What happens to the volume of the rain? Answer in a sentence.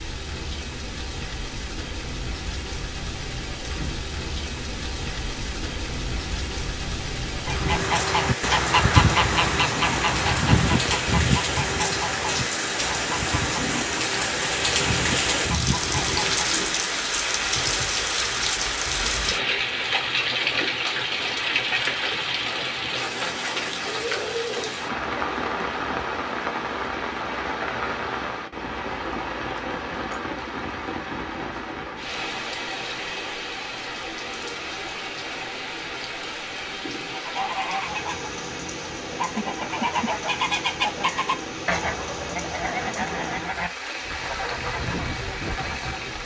The loudness of the rain goes up, then down.